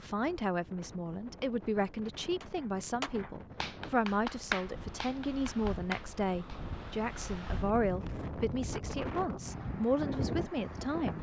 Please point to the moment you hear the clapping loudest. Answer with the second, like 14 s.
4 s.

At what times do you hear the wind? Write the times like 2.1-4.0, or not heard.
0.0-11.1.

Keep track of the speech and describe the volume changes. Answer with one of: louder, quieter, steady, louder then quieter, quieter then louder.
steady.